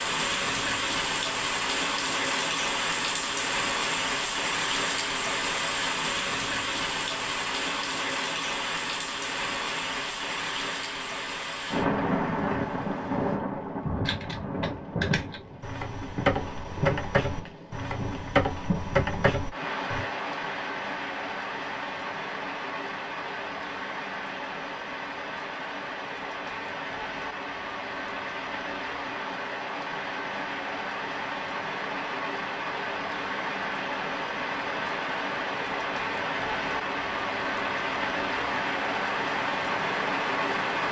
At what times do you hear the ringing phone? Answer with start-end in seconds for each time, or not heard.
not heard.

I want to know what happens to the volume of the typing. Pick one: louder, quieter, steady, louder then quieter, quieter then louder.
louder.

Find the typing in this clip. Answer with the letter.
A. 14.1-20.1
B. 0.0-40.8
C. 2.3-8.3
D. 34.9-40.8
A.